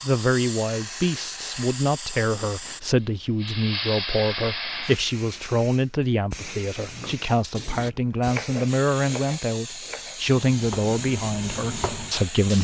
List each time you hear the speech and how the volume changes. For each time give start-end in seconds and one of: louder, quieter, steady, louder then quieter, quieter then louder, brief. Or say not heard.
0.0-12.5 steady.